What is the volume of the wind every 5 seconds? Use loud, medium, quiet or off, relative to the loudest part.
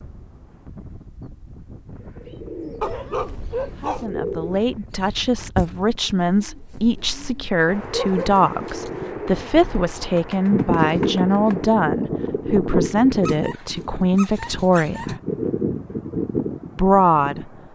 quiet, quiet, loud, loud.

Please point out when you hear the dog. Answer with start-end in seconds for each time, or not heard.
2.8-4.1, 8.0-9.1, 13.2-15.2.